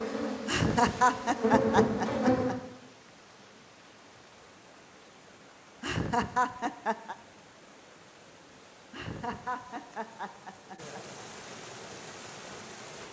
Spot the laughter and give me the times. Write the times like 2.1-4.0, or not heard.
0.5-2.5, 5.8-7.2, 8.9-11.2.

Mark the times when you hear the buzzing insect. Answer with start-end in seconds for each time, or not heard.
0.0-2.6.